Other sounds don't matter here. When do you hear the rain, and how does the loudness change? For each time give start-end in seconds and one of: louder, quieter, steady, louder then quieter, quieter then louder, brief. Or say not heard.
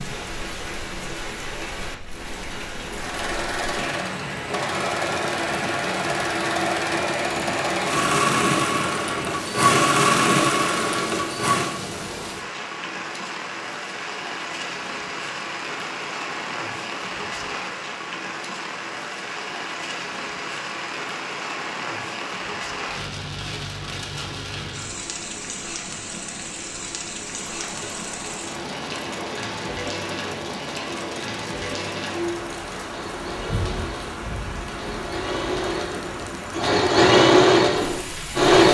0.0-38.5 steady.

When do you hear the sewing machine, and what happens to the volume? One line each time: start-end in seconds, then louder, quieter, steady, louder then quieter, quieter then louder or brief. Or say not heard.
3.0-11.8 louder
27.4-38.6 louder.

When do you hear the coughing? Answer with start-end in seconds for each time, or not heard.
not heard.